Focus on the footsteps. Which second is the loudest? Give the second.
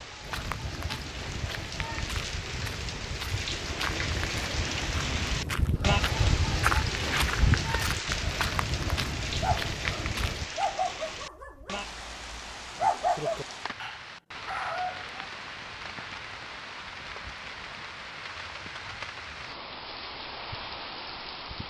7 s.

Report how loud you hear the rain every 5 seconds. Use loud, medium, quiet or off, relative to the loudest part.
loud, loud, medium, medium, medium.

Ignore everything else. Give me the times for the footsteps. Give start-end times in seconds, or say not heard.
0.2-10.5.